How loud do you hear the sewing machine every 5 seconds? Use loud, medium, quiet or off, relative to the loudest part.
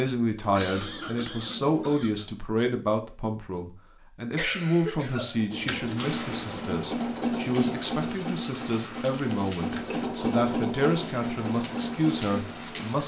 off, loud, loud.